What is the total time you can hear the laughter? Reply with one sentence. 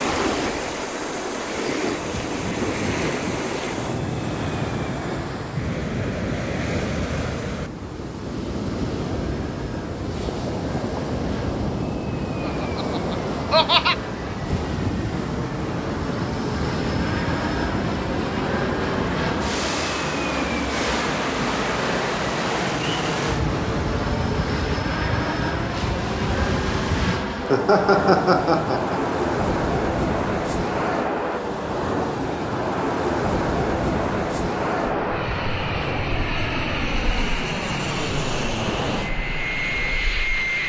The laughter can be heard for 3 seconds in total.